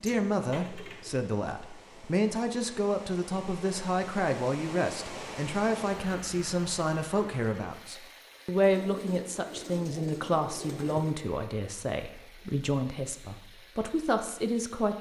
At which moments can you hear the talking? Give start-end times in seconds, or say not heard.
0.0-14.9.